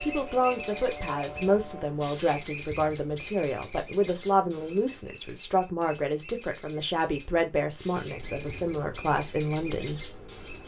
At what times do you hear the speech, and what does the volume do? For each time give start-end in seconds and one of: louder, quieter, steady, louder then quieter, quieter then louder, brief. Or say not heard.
0.0-10.1 steady.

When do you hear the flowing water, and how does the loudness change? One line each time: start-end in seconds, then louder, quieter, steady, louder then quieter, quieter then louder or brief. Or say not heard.
not heard.